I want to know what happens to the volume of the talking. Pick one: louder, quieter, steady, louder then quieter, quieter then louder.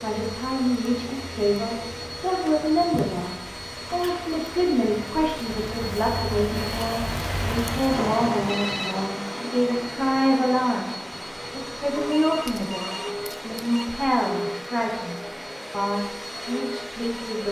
steady.